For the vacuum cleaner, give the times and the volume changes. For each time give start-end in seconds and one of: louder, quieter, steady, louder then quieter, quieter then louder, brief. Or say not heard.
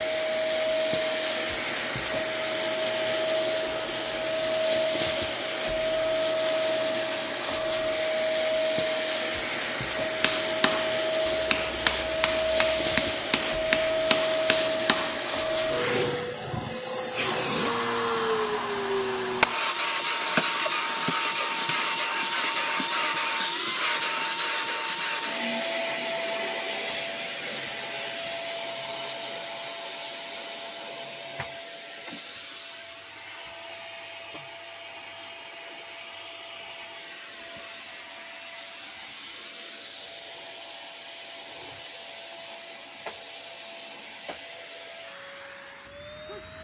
0.0-46.5 quieter.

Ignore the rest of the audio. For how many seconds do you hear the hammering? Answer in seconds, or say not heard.
5 s.